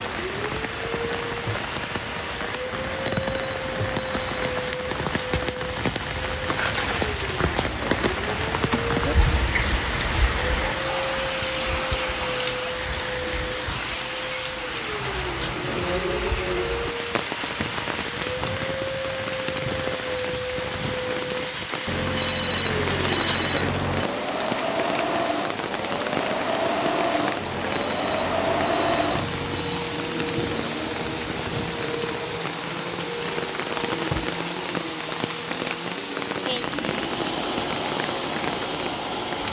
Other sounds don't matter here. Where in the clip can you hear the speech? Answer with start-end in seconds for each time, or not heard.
not heard.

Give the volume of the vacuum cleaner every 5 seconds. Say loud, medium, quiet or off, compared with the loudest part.
medium, medium, medium, medium, loud, loud, loud, loud.